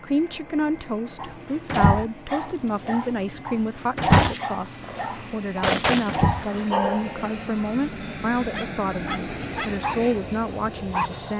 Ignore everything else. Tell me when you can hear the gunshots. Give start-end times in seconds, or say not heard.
4.1-6.7.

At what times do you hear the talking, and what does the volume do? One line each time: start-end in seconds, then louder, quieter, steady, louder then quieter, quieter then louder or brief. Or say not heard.
0.0-11.3 steady.